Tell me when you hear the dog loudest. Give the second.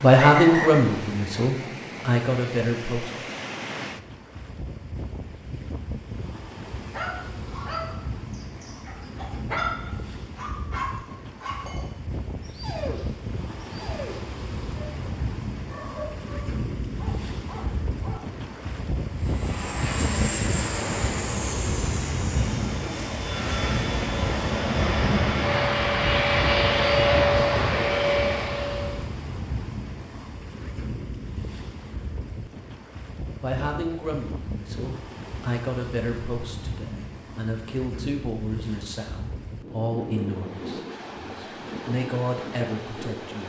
10 s.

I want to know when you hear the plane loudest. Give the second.
27 s.